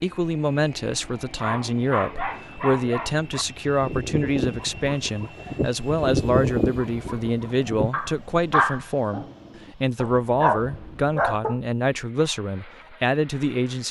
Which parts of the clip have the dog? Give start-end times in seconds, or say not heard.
1.4-11.6.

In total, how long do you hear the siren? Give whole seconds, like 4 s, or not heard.
not heard.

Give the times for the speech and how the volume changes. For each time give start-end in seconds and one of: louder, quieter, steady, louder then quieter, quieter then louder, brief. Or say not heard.
0.0-13.8 steady.